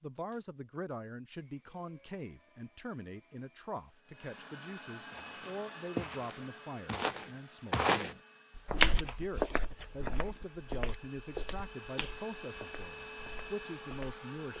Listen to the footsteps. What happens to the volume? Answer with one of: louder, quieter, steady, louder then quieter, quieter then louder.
louder then quieter.